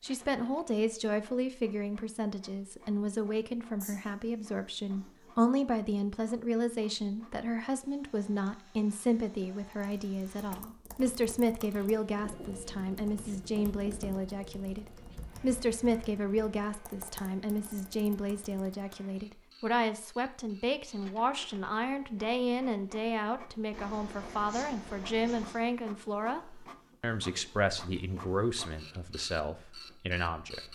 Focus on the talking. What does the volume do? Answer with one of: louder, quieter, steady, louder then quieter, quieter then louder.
steady.